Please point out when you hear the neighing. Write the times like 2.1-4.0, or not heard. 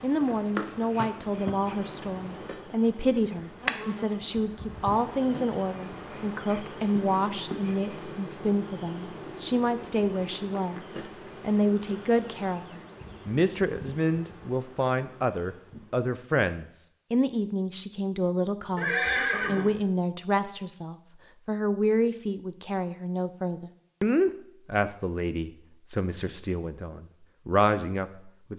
18.8-19.8.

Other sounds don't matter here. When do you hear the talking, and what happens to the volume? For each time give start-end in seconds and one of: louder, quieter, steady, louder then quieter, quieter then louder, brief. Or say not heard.
0.0-28.5 steady.